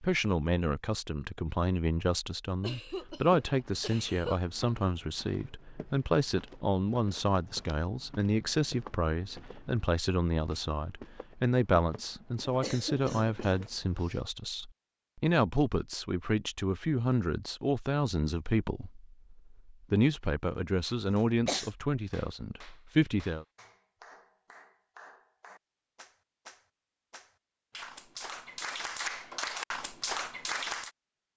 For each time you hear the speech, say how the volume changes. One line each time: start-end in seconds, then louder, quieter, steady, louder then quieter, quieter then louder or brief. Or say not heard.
0.0-23.4 steady.